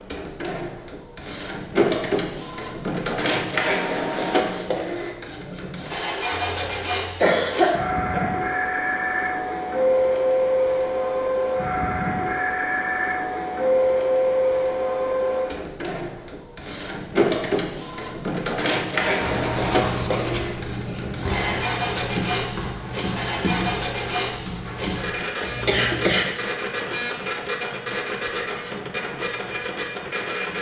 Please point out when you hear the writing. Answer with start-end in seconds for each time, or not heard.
19.1-26.1.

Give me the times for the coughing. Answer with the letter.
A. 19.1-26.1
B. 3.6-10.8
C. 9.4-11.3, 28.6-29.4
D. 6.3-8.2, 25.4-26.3
D.